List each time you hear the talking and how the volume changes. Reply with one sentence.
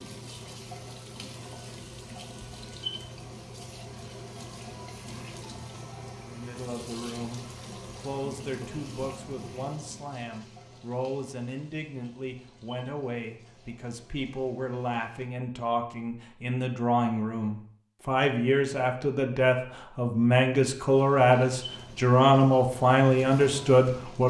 The talking can be heard from 6.2 to 24.2 s, getting louder.